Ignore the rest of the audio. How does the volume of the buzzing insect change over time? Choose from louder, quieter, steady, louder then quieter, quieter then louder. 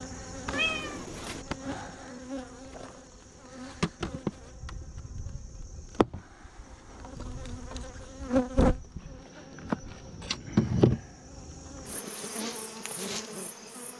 louder then quieter.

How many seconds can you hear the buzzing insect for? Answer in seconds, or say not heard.
14 s.